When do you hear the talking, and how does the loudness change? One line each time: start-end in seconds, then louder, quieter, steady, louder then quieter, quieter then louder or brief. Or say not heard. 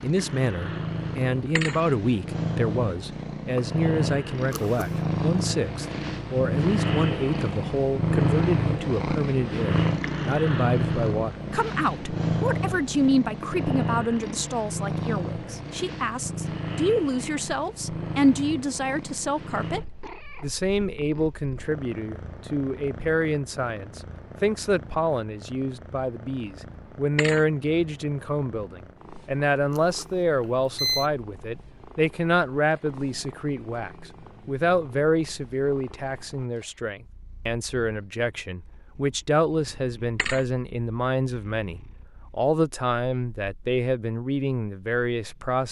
0.0-45.6 steady.